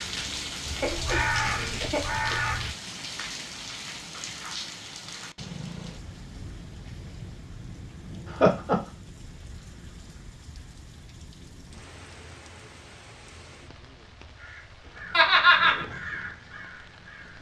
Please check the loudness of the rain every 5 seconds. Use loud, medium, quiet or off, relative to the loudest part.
loud, medium, quiet, quiet.